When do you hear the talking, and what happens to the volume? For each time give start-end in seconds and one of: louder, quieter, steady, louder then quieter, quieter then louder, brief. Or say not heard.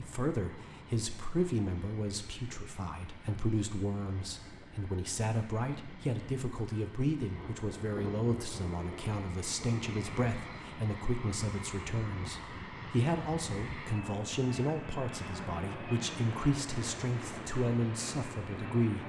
0.0-19.0 steady.